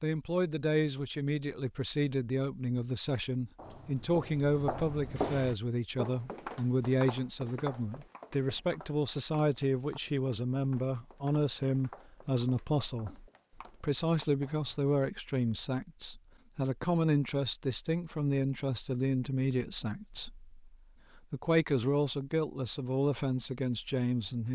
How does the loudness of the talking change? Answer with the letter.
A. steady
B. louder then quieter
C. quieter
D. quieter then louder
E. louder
A.